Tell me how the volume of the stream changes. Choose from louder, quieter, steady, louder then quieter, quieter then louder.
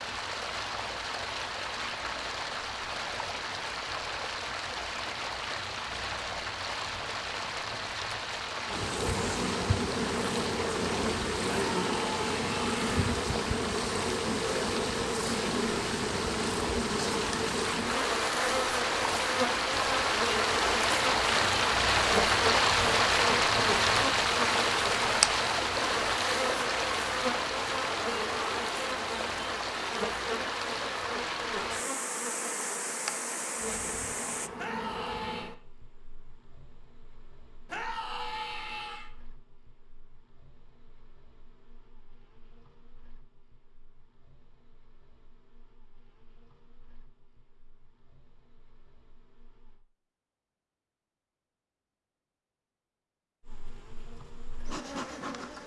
louder then quieter.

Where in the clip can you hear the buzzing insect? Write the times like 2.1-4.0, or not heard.
8.7-49.9, 53.4-55.6.